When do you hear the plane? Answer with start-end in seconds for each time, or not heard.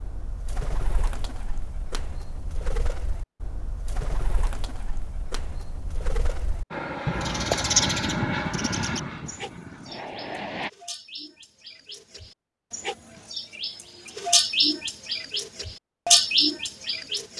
6.7-10.7.